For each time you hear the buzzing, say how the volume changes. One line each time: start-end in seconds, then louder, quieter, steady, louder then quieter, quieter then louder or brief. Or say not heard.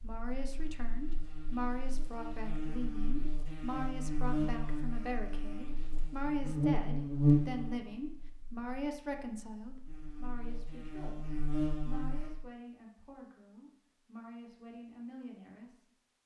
0.0-12.3 louder then quieter.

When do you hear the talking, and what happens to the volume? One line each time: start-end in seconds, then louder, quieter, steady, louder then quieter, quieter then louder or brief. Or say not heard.
0.0-15.8 quieter.